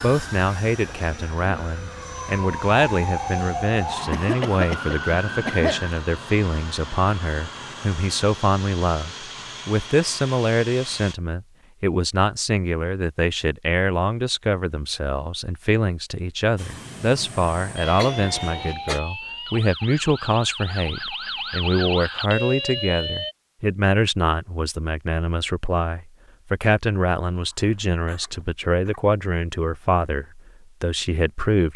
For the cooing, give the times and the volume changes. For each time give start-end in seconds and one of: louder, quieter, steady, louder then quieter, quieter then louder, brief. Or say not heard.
not heard.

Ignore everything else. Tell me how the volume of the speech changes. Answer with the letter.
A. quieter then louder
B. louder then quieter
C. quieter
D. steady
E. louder
D.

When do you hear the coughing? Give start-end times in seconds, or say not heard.
4.1-5.8, 17.9-19.0, 27.4-29.0.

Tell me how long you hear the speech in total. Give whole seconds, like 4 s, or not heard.
32 s.